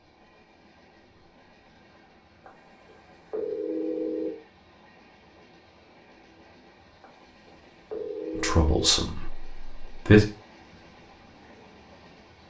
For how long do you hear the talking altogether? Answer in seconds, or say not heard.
2 s.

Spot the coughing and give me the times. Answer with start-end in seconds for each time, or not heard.
not heard.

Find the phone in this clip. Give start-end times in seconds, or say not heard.
2.5-4.3, 7.0-8.9.